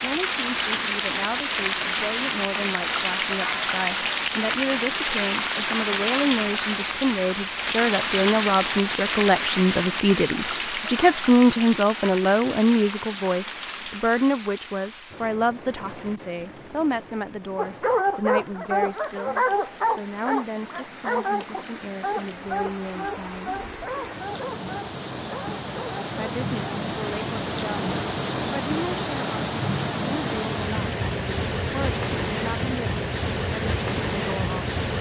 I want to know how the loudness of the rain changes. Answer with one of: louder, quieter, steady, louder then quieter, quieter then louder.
quieter then louder.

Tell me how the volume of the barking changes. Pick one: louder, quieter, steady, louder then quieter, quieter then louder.
quieter.